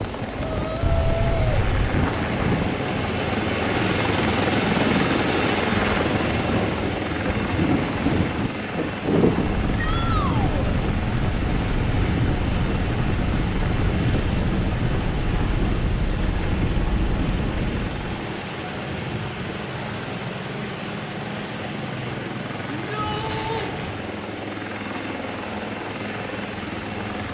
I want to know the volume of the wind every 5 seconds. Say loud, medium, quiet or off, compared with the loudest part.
loud, loud, loud, loud, off, off.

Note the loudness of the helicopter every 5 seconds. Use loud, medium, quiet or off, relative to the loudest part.
loud, loud, medium, medium, medium, medium.